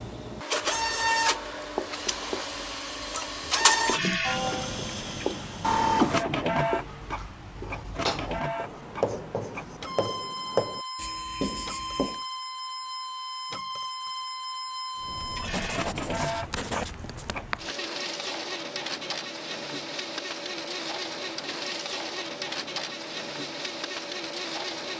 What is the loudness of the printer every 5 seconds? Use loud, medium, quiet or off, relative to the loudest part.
loud, loud, medium, medium, medium.